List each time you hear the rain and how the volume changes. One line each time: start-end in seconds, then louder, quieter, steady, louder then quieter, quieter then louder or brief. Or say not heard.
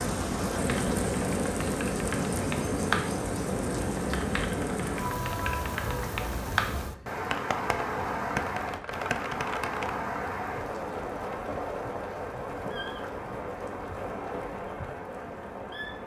0.0-16.0 quieter.